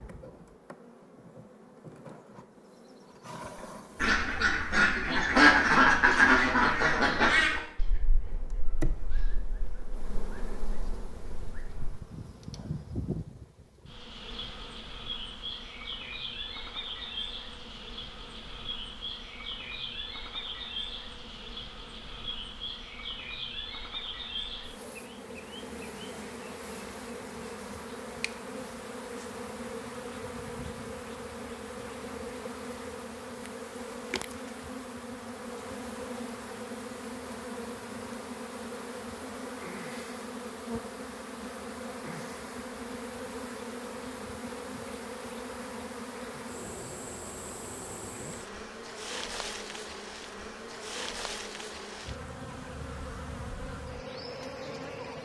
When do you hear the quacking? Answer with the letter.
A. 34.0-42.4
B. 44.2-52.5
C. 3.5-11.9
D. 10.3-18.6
C.